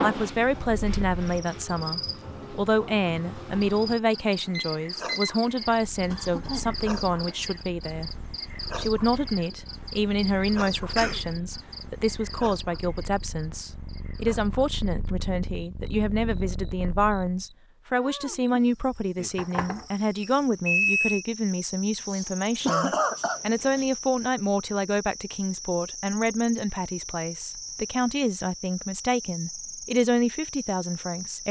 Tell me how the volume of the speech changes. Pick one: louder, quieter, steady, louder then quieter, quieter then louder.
steady.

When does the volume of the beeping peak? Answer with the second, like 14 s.
21 s.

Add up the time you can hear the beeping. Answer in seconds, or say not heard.
3 s.